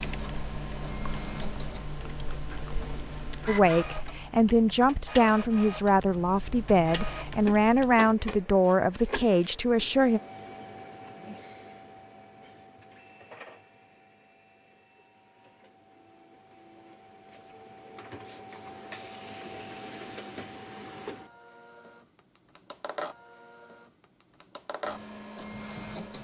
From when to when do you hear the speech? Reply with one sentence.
You can hear the speech from 3.5 to 10.2 s.